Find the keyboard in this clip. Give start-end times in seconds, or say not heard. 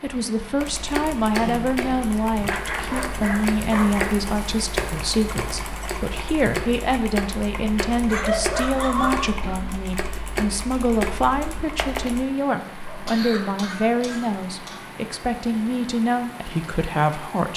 0.6-12.2.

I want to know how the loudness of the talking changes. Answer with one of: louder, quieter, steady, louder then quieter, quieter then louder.
steady.